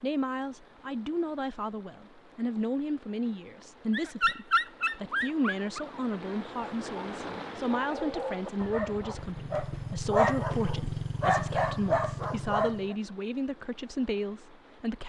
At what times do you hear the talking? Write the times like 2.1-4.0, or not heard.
0.0-15.0.